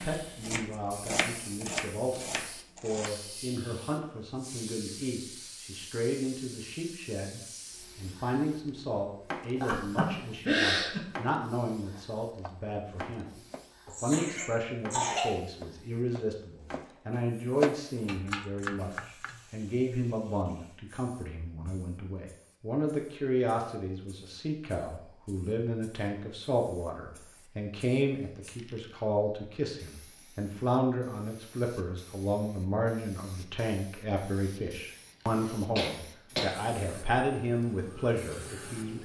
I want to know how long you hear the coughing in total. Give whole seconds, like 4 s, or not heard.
4 s.